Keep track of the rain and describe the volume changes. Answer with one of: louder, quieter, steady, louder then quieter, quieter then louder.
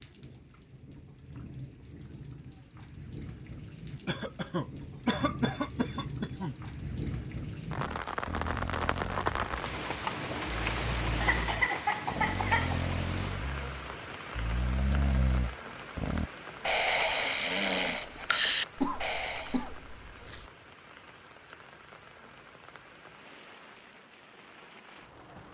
louder then quieter.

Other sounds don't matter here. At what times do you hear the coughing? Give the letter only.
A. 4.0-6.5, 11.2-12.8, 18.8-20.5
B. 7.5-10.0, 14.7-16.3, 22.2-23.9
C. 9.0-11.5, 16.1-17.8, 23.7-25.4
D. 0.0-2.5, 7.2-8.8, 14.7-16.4
A.